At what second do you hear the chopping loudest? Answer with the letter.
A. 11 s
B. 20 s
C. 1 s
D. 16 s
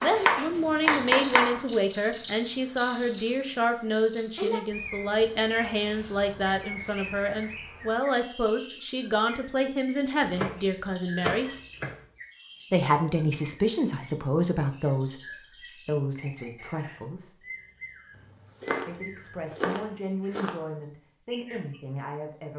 C.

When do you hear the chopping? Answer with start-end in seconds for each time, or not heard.
0.0-1.6, 10.2-12.1, 18.6-20.6.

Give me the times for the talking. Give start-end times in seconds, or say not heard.
0.0-11.5, 12.7-17.4, 18.9-22.5.